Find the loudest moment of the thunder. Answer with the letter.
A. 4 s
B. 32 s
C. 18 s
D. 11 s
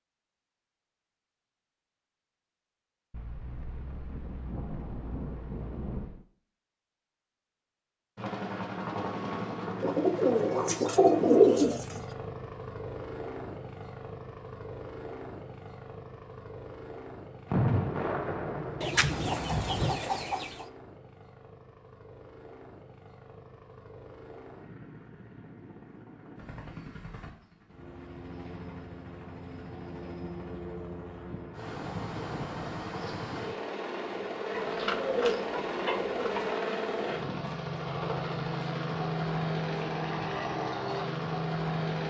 C.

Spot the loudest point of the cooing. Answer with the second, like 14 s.
11 s.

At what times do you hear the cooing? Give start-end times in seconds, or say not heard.
9.8-12.0, 18.8-20.6, 34.5-36.5.